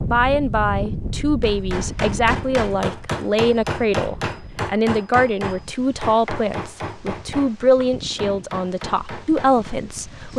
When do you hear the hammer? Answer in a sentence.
You can hear the hammer from 1.4 to 9.8 s.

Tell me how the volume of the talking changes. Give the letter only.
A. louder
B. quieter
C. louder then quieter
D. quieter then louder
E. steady
E.